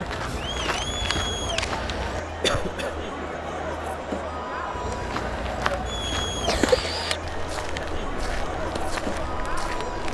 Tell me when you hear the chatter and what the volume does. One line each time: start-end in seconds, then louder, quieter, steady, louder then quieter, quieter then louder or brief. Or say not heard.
0.0-10.0 steady.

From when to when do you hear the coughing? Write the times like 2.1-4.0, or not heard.
2.4-3.1, 6.2-6.9.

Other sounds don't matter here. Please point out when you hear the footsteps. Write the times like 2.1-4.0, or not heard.
0.0-2.2, 4.7-10.0.